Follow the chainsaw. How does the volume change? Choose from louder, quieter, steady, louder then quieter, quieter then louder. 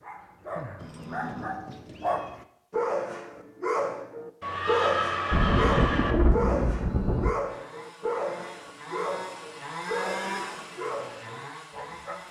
louder then quieter.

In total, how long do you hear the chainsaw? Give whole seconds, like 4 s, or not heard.
5 s.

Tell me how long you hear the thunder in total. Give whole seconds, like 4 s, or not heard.
2 s.